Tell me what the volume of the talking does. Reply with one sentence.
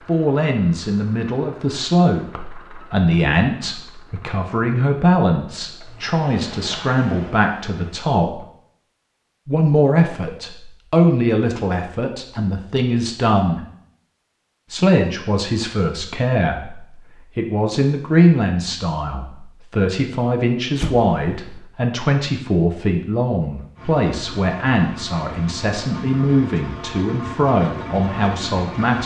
The loudness of the talking stays about the same.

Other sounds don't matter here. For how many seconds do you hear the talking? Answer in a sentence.
The talking can be heard for 27 seconds in total.